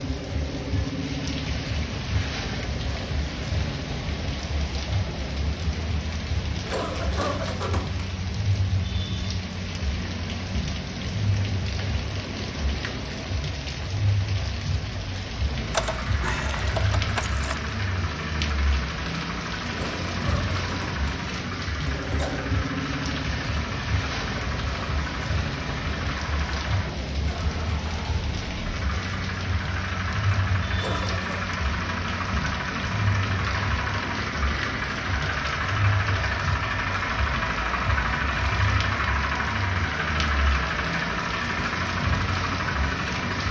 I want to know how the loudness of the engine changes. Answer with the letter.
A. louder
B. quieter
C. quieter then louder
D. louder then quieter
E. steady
A.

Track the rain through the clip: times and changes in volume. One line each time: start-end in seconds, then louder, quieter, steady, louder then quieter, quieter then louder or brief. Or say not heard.
0.0-43.4 steady.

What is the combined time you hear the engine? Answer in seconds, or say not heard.
28 s.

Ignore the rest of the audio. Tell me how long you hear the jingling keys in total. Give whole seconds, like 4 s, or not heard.
2 s.